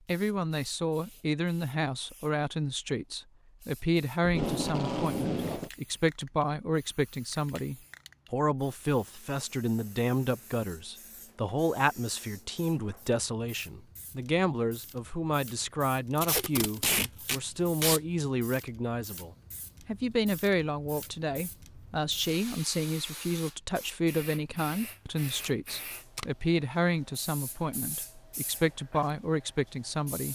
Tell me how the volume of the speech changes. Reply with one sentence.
The volume of the speech stays about the same.